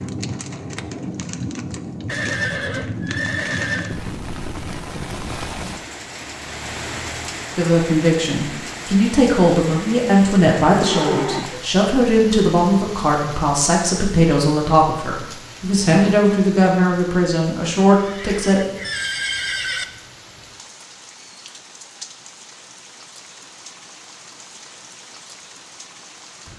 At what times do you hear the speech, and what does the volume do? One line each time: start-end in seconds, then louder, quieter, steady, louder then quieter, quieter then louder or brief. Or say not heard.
7.5-18.6 steady.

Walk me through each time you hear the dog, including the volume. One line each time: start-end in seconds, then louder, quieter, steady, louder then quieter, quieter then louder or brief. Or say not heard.
not heard.